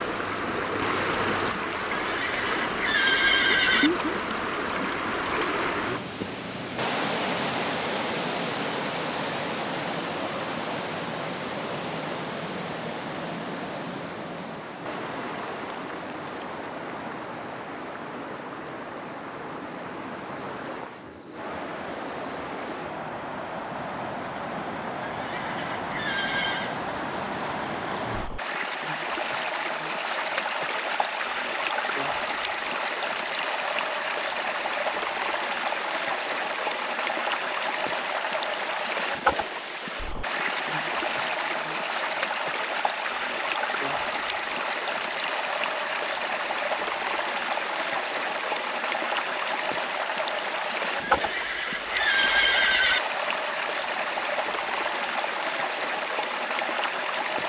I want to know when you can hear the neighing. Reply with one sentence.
You can hear the neighing from 1.9 to 3.9 s, from 25.1 to 26.8 s and from 51.1 to 53.0 s.